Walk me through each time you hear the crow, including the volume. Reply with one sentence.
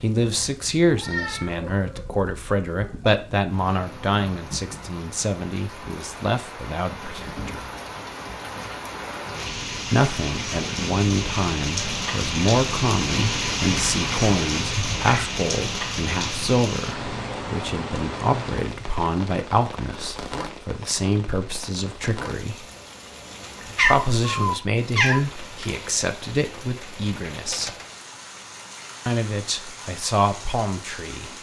You can't hear the crow here.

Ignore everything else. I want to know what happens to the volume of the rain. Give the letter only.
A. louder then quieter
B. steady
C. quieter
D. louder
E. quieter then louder
A.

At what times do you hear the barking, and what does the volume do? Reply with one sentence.
The barking can't be heard in this clip.